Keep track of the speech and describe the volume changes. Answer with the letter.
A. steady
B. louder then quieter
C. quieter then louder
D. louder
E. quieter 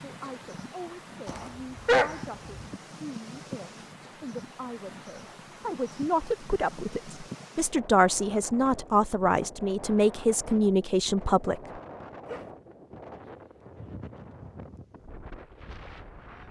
D.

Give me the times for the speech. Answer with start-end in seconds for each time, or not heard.
0.0-11.6.